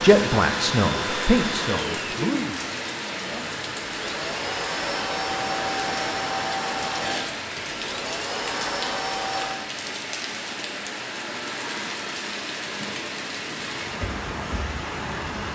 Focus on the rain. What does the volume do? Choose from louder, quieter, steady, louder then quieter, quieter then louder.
steady.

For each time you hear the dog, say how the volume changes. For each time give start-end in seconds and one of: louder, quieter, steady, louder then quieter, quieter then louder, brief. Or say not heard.
not heard.